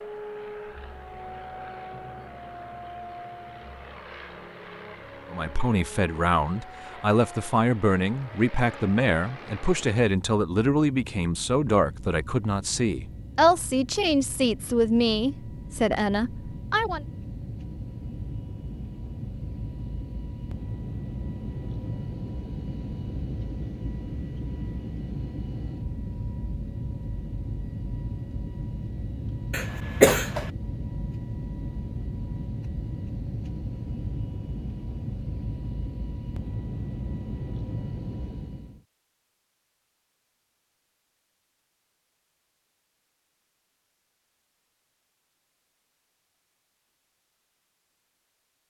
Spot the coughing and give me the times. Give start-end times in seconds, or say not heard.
29.5-30.5.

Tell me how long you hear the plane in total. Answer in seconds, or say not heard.
39 s.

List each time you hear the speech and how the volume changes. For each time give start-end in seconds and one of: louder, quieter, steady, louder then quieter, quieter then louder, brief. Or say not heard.
5.3-17.1 steady.